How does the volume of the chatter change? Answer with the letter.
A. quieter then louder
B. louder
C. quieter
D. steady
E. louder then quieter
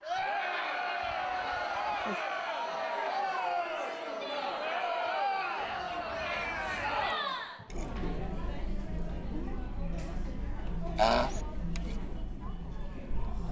C.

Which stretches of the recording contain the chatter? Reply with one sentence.
The chatter can be heard from 0.0 to 13.4 s.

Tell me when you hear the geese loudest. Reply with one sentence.
The volume of the geese peaks at 11 seconds.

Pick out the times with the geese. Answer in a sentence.
The geese can be heard from 1.0 to 2.1 s, from 5.5 to 7.2 s and from 10.9 to 11.4 s.